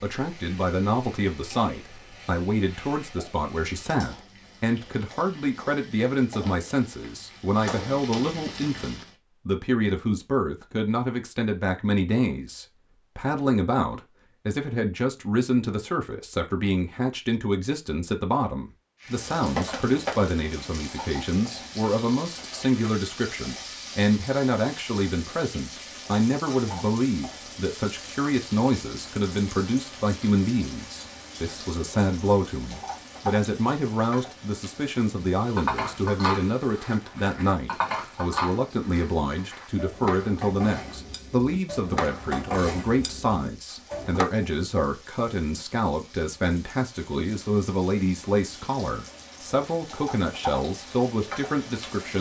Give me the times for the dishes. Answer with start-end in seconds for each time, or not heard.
35.5-44.2.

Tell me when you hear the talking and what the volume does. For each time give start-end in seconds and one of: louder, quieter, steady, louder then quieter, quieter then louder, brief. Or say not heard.
0.0-52.1 steady.